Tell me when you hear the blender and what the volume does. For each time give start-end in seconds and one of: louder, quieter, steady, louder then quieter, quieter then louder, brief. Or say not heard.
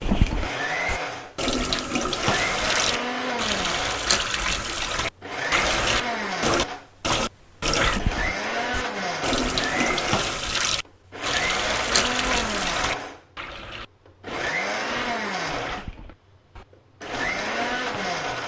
0.3-18.4 steady.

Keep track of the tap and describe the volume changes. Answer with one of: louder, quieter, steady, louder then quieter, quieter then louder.
quieter.